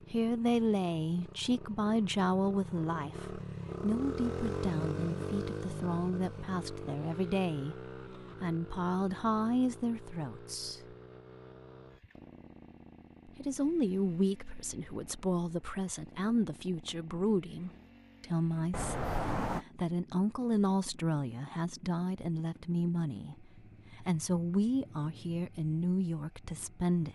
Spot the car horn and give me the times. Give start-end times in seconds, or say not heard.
18.7-19.6.